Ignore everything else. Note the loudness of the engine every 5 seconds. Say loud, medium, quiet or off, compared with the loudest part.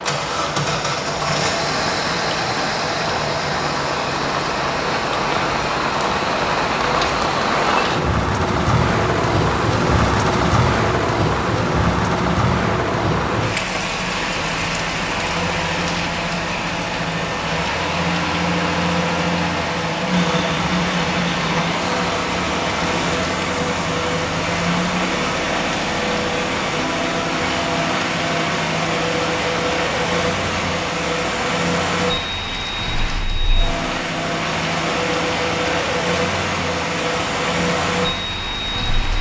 loud, medium, medium, loud, loud, loud, loud, loud.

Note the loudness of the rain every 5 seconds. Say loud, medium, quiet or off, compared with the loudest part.
medium, loud, loud, medium, medium, medium, medium, medium.